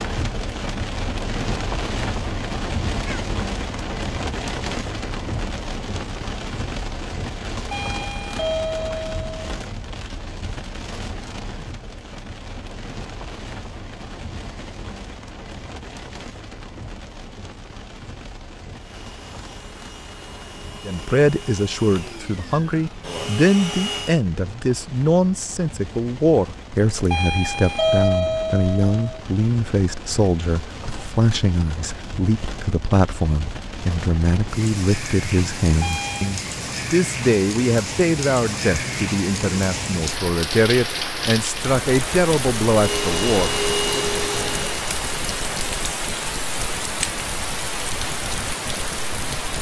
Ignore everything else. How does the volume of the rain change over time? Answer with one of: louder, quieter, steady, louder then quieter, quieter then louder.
quieter then louder.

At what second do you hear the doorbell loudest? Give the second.
28 s.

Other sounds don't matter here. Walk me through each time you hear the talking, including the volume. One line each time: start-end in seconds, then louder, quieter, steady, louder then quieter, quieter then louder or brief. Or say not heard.
20.9-44.0 steady.